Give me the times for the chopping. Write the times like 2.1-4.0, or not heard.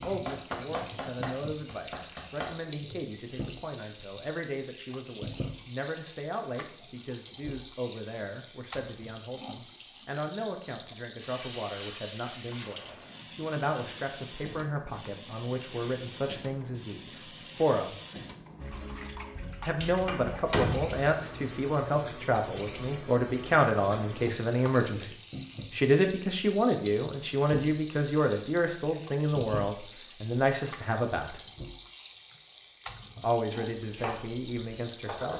0.0-2.5, 33.8-35.3.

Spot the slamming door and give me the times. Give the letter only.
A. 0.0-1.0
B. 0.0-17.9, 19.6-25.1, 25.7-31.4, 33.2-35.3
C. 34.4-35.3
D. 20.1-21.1
D.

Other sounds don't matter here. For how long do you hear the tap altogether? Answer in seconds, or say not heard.
35 s.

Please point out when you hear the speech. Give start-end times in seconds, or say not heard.
0.0-17.9, 19.6-25.1, 25.7-31.4, 33.2-35.3.